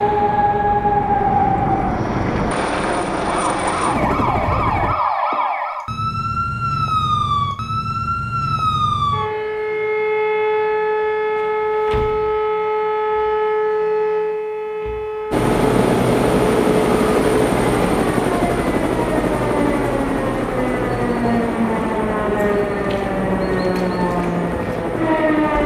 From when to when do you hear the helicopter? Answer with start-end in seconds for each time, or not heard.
0.0-5.0, 15.3-25.6.